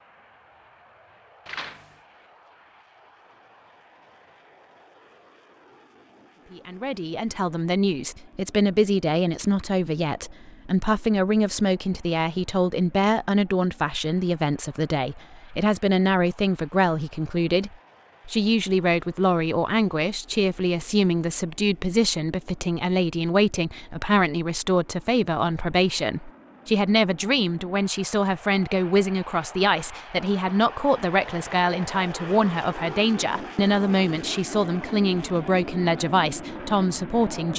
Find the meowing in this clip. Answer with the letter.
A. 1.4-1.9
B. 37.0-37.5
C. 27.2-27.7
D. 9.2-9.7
A.